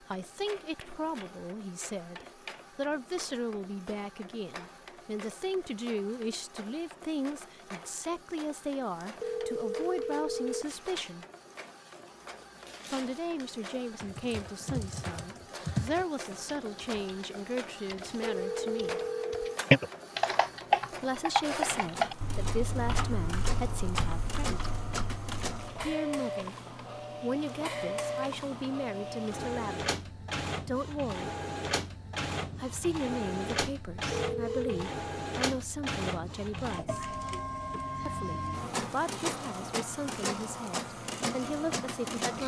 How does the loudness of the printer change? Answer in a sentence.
The volume of the printer goes up.